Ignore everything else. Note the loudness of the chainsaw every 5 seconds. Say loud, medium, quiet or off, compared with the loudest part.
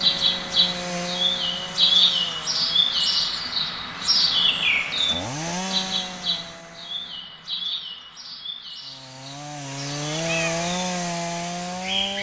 medium, medium, loud.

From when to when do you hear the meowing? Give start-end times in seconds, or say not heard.
10.2-10.7.